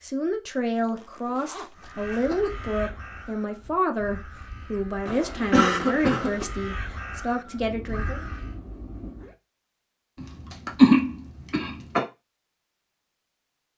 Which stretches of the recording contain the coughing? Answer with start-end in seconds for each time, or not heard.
2.1-2.6, 5.0-6.5, 10.2-12.1.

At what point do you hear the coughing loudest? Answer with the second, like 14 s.
11 s.